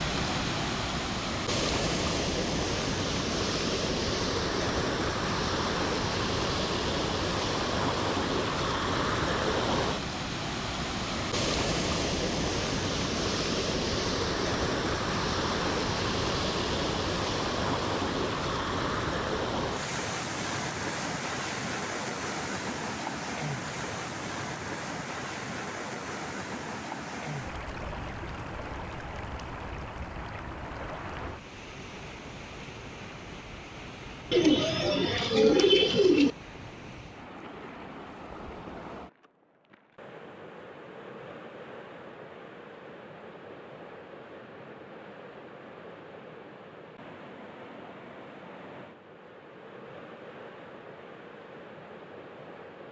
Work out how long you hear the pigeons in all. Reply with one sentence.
You can hear the pigeons for 2 seconds altogether.